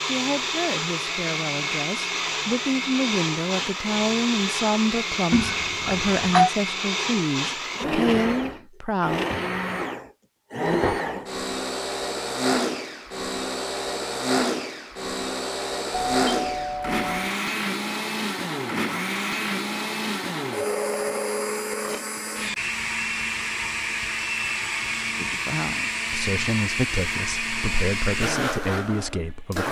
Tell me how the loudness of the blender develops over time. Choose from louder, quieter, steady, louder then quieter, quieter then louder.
steady.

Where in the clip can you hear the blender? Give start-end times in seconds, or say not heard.
0.0-29.6.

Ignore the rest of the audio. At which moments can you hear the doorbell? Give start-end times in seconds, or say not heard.
5.3-6.5, 16.1-17.4.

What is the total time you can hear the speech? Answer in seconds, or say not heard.
14 s.